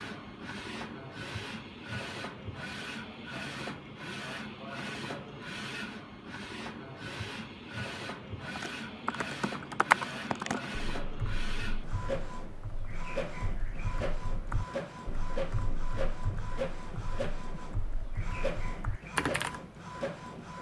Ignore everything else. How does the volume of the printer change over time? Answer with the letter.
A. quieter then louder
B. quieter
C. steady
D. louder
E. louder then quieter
C.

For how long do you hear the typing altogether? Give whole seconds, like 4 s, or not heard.
11 s.